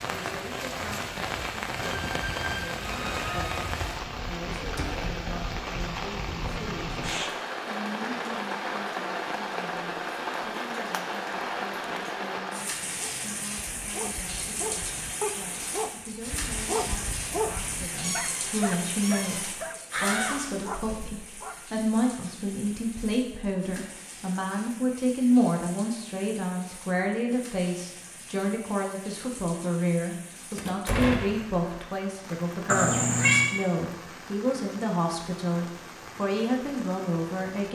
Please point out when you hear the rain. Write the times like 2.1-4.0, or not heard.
0.0-37.6.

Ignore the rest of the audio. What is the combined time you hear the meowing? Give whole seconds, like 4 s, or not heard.
4 s.